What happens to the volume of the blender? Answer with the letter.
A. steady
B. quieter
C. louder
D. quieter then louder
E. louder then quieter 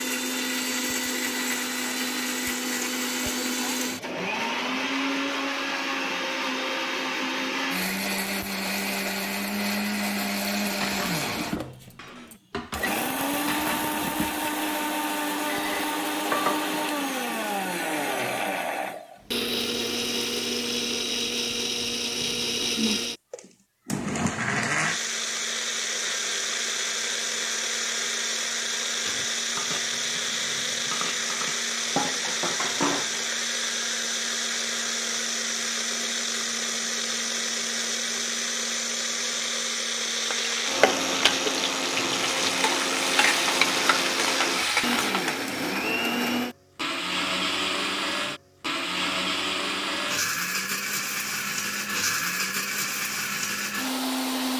A.